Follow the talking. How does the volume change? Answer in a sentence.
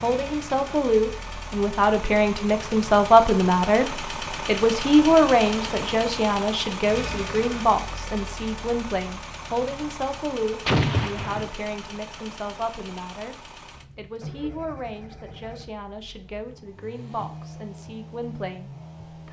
The volume of the talking goes down.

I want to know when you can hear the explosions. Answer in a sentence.
The explosions can be heard from 10.7 to 11.5 s.